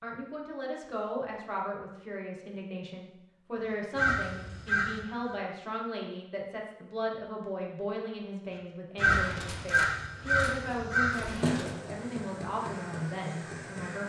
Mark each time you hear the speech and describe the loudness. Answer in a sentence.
You can hear the speech from 0.0 to 14.0 s, at a steady volume.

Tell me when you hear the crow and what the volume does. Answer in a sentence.
You can hear the crow briefly from 4.0 to 5.4 s; and from 8.9 to 14.0 s, getting quieter.